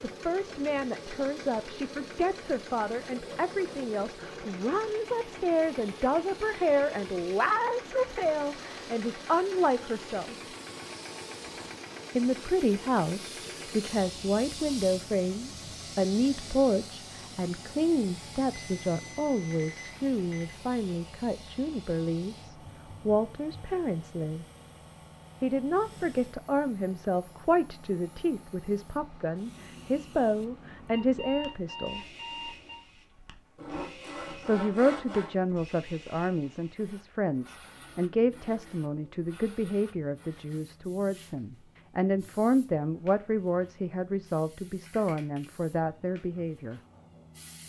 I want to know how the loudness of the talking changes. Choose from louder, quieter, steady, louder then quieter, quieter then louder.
steady.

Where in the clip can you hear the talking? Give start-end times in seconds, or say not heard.
0.0-10.3, 12.2-24.4, 25.4-32.0, 34.4-46.8.